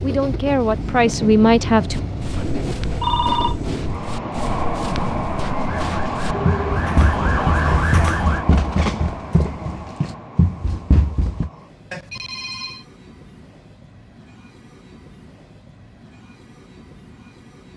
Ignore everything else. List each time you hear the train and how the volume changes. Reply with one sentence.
The train can be heard from 0.0 to 17.7 s, getting quieter.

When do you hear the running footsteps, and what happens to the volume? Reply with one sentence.
You can hear the running footsteps from 1.9 to 11.5 s, getting louder.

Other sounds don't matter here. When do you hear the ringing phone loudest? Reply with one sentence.
The volume of the ringing phone peaks at 3 seconds.